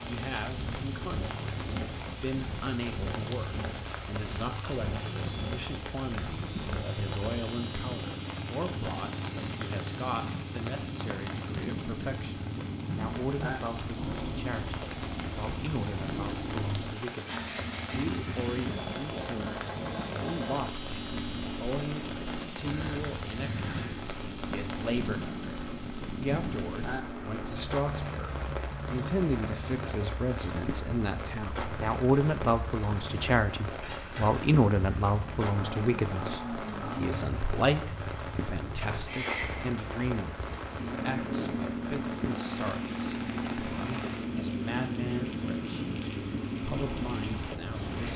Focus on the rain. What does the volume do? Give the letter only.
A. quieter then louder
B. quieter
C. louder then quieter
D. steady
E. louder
D.